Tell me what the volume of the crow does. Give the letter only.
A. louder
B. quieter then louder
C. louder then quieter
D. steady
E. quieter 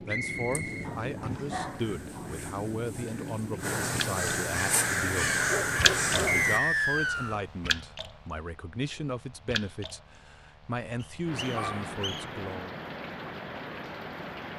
A.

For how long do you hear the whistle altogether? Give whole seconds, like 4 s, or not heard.
4 s.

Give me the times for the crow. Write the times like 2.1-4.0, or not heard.
0.2-6.6.